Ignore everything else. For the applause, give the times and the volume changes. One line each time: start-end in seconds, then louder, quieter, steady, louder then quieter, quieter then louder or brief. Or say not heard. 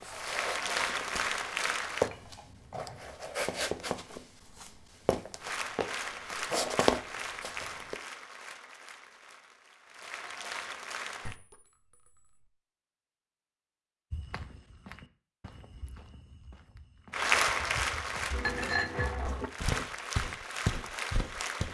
0.0-2.1 brief
5.4-11.3 quieter then louder
17.1-21.6 quieter then louder.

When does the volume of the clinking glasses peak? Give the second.
19 s.